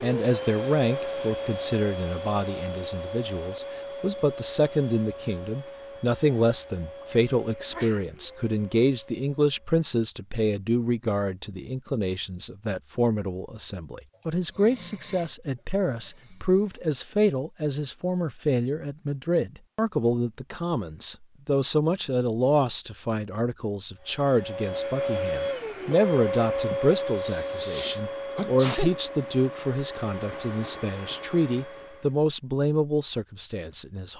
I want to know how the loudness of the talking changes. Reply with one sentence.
The volume of the talking stays about the same.